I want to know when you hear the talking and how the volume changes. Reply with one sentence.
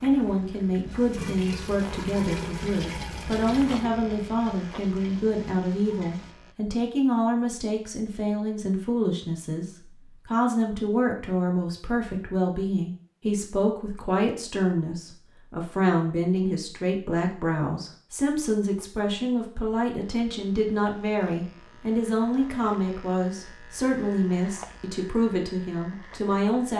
You can hear the talking from 0.0 to 26.7 s, at a steady volume.